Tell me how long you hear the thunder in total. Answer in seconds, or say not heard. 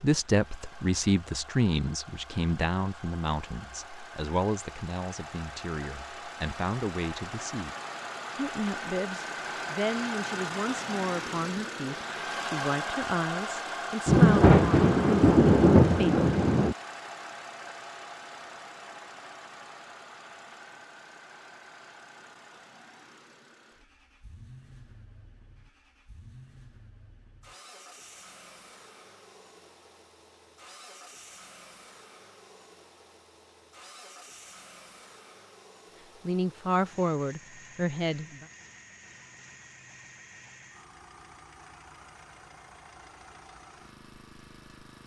3 s.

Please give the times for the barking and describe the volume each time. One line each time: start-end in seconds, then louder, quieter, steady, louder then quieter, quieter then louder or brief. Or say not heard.
not heard.